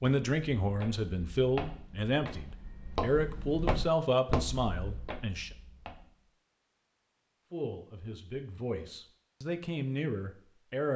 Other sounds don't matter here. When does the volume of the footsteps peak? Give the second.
4 s.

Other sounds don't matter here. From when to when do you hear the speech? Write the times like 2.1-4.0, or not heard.
0.0-5.5, 7.5-10.9.